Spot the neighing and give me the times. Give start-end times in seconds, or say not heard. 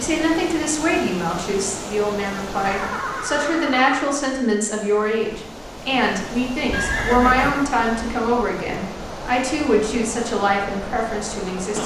2.6-4.0, 6.7-7.7.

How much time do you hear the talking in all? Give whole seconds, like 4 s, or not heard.
12 s.